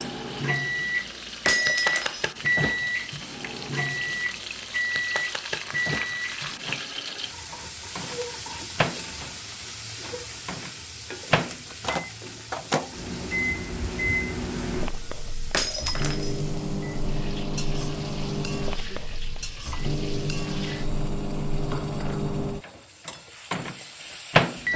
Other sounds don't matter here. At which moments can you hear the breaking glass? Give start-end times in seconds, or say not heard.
1.4-2.2, 15.5-16.3.